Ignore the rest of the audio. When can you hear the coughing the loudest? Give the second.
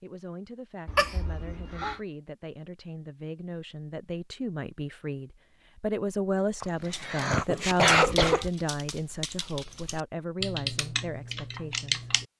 8 s.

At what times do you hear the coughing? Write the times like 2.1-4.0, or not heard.
0.8-1.9, 6.6-8.5.